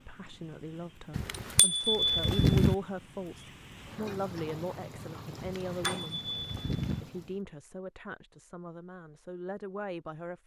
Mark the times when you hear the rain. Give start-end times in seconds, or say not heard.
0.0-7.4.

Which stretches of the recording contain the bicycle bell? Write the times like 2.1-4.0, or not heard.
1.1-2.8, 5.4-7.0.